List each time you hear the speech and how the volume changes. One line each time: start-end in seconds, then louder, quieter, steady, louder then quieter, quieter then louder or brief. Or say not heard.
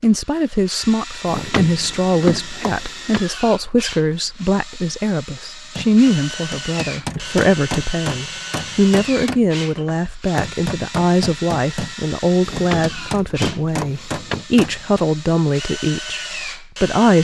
0.0-17.1 steady.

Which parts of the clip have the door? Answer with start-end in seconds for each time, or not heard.
1.2-3.2, 12.4-14.4.